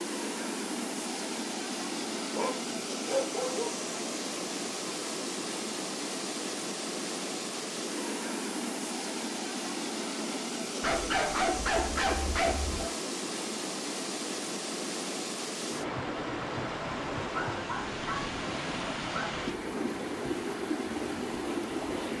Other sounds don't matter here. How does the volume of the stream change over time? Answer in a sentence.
The volume of the stream stays about the same.